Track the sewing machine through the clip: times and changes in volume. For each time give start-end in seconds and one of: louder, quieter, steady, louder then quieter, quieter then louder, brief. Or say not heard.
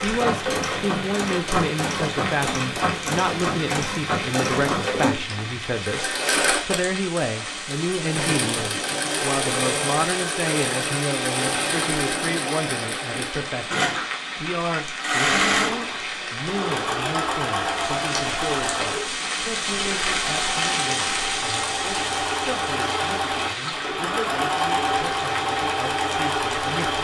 0.0-27.0 steady.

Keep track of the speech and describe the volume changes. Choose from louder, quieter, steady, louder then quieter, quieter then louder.
quieter.